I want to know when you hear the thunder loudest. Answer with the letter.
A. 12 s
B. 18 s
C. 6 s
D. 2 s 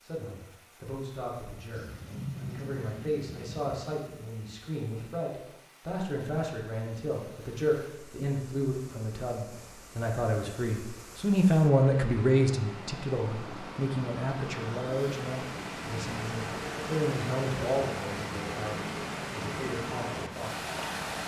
D.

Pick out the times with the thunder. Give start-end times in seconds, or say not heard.
1.8-3.8.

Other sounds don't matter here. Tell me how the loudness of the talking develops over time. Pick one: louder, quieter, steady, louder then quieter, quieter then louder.
louder then quieter.